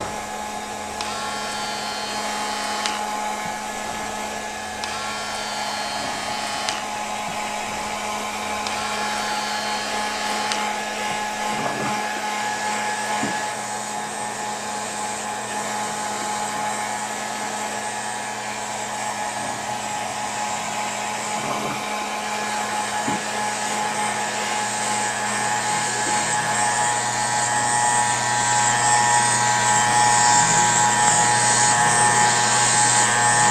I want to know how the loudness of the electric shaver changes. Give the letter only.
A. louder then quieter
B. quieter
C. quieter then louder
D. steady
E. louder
E.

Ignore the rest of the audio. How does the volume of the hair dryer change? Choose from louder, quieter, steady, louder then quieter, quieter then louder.
steady.